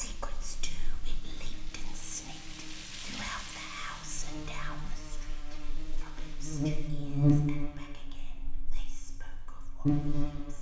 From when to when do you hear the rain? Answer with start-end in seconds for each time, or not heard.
0.0-6.9.